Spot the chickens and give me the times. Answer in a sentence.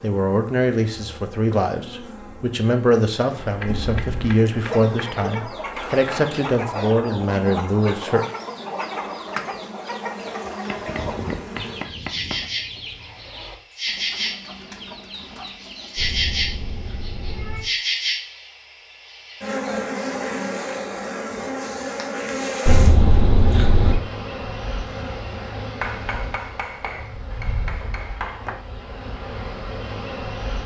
The chickens can be heard from 4.7 to 15.9 s.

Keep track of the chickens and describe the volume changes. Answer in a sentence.
The loudness of the chickens goes down.